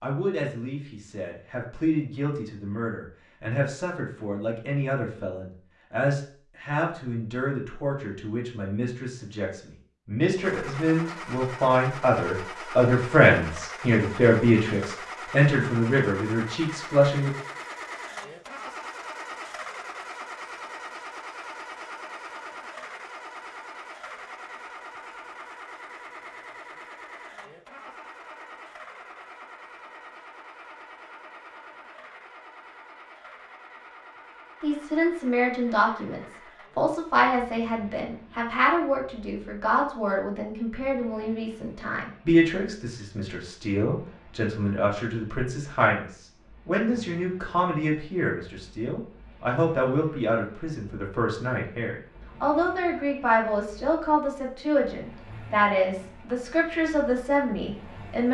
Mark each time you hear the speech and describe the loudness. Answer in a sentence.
The speech can be heard from 0.0 to 17.3 s, getting louder; and from 34.6 to 58.2 s, at a steady volume.